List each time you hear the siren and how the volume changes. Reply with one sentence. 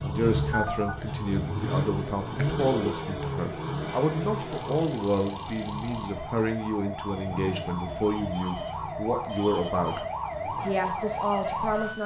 You can hear the siren from 0.0 to 12.0 s, getting louder.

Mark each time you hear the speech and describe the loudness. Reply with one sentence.
The speech can be heard from 0.0 to 12.0 s, at a steady volume.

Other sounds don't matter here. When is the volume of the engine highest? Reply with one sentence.
The volume of the engine peaks at 2 seconds.